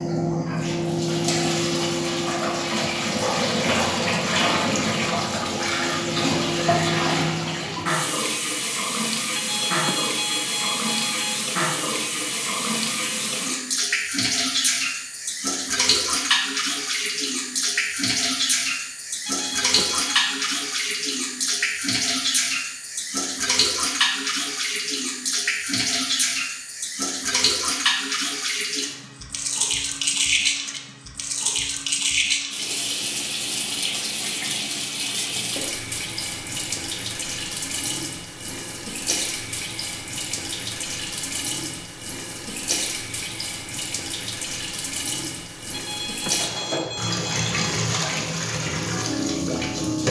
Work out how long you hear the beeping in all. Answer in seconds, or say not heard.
5 s.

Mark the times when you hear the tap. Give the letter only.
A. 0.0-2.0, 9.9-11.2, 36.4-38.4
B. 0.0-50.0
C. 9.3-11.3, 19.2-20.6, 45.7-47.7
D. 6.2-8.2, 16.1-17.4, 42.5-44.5
B.